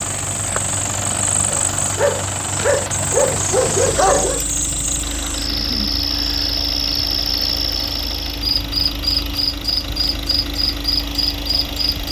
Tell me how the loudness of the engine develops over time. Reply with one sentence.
The volume of the engine stays about the same.